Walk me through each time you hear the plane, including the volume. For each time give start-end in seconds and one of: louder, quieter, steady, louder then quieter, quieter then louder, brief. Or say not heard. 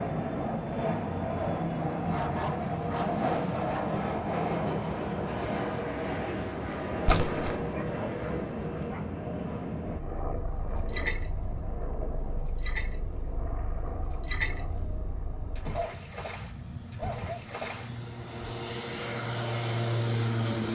0.0-20.7 quieter then louder.